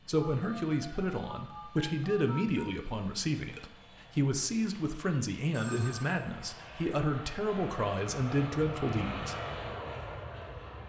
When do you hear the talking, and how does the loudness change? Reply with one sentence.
The talking can be heard from 0.1 to 9.3 s, at a steady volume.